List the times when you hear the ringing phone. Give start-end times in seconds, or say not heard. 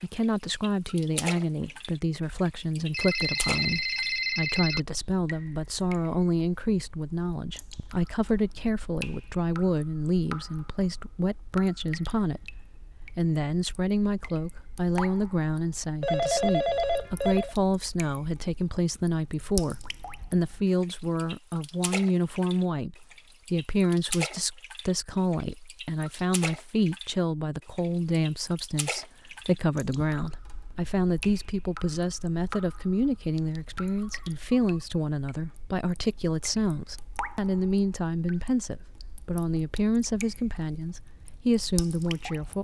2.9-4.8, 16.0-17.6, 33.4-34.8.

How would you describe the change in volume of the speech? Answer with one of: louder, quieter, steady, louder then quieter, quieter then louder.
steady.